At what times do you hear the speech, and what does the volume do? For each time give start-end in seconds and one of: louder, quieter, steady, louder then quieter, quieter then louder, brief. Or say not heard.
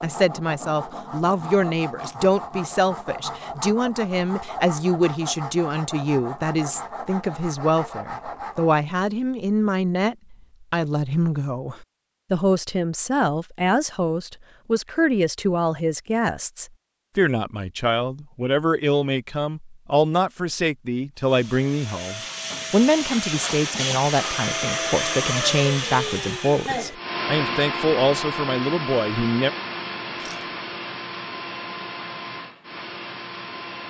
0.0-29.5 steady.